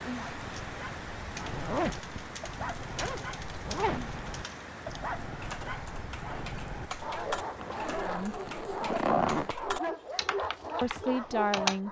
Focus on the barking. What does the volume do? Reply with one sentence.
The loudness of the barking goes up.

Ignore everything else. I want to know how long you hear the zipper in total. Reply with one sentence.
The zipper can be heard for 5 seconds in total.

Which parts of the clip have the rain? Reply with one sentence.
You can hear the rain from 0.0 to 9.6 s.